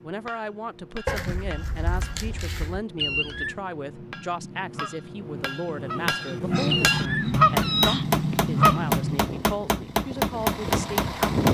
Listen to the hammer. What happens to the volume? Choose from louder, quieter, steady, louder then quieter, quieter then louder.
louder.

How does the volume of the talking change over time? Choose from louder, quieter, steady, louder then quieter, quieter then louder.
steady.